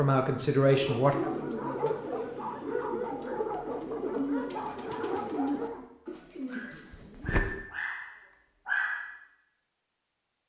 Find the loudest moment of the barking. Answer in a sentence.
The loudest moment of the barking is at 9 seconds.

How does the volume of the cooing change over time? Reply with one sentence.
The loudness of the cooing goes down.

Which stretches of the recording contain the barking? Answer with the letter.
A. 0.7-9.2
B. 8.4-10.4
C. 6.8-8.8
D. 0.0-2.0
A.